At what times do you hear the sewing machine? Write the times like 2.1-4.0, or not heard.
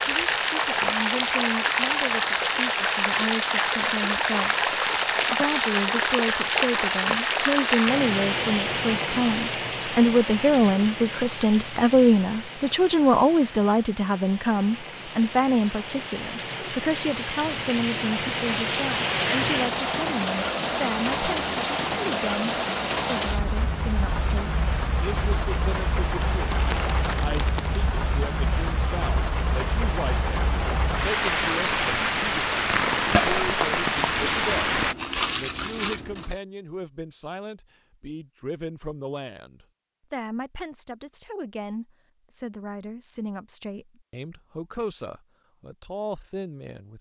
not heard.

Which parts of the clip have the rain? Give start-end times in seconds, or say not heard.
0.0-35.0.